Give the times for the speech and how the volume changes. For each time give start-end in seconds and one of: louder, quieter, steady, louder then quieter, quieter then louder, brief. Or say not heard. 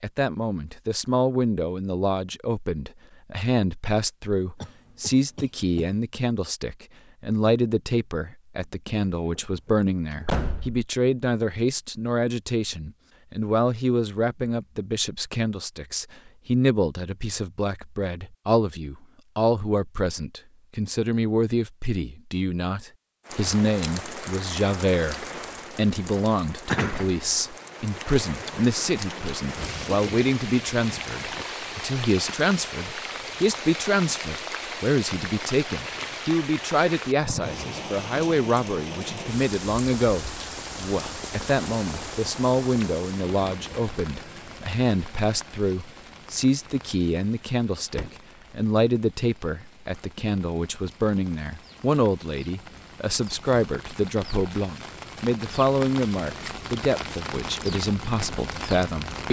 0.0-59.2 steady.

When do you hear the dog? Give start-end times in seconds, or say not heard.
not heard.